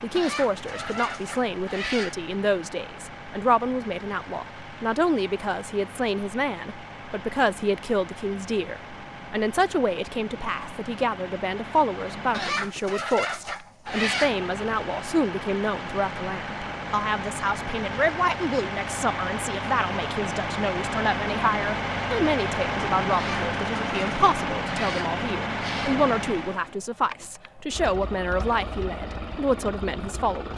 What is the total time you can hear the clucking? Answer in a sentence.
You can hear the clucking for 7 seconds altogether.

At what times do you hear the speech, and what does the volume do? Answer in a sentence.
The speech can be heard from 0.0 to 30.5 s, at a steady volume.